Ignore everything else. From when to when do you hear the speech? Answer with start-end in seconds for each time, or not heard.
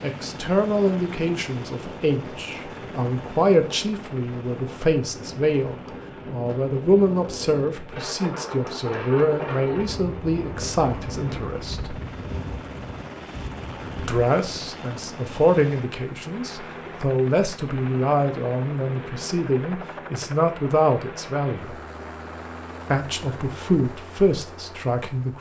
0.0-11.9, 13.9-21.8, 22.9-25.3.